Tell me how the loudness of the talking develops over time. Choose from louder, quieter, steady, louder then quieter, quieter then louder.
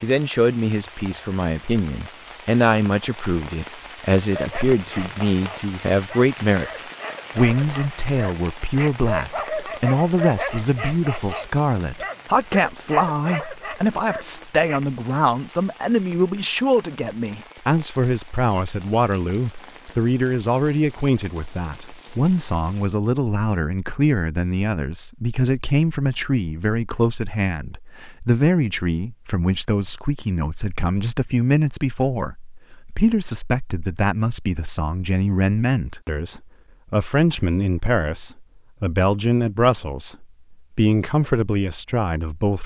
steady.